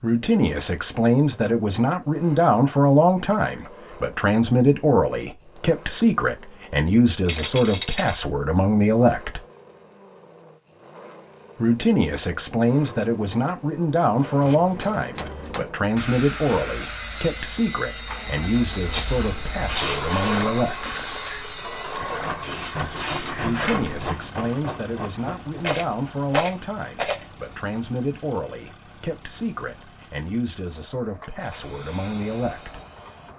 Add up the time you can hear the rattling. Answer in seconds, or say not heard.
4 s.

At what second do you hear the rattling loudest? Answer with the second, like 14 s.
20 s.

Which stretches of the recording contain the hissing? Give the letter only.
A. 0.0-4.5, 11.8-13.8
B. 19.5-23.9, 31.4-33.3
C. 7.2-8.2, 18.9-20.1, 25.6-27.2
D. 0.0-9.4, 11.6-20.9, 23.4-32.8
B.